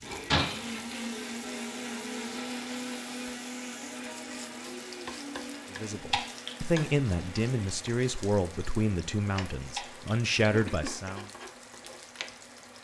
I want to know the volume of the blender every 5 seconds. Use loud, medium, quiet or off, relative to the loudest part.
loud, medium, off.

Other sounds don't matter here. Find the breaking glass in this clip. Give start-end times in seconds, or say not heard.
0.3-0.8, 6.1-6.5, 9.8-10.2.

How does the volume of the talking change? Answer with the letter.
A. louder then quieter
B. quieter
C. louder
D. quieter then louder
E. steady
D.